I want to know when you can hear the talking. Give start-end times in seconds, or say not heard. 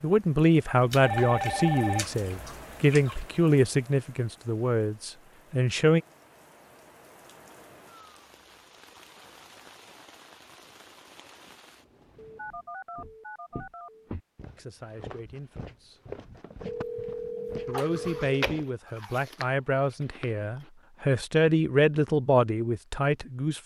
0.0-6.0, 14.6-15.9, 17.6-23.6.